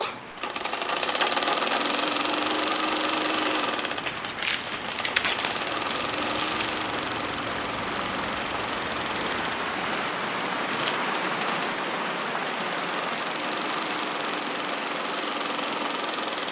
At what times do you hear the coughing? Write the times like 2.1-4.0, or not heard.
not heard.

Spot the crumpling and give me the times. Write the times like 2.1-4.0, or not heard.
4.0-6.7, 9.8-11.0.